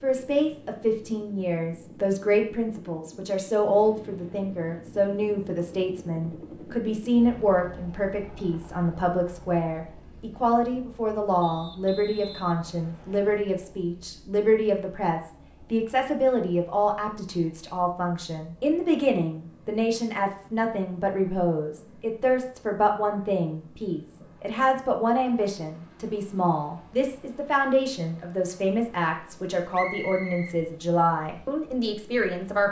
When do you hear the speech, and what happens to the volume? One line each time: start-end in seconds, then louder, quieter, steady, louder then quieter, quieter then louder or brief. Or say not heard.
0.0-32.6 steady.